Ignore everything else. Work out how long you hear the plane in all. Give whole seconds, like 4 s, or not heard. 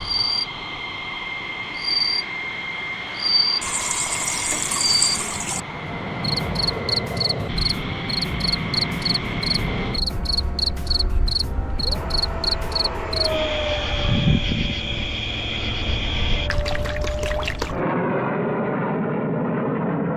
20 s.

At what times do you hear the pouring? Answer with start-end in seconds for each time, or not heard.
3.6-5.6, 16.4-17.8.